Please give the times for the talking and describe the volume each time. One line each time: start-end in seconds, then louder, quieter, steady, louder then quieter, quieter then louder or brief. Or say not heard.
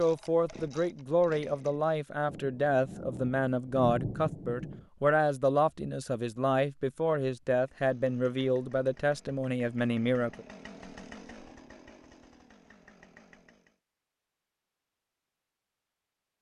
0.0-10.4 steady.